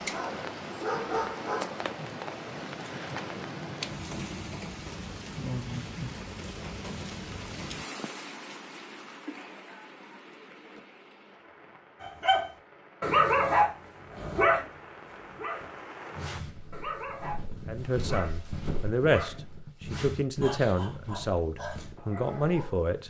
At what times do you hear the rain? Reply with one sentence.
You can hear the rain from 0.0 to 16.4 s.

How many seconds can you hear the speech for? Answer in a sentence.
You can hear the speech for 5 seconds altogether.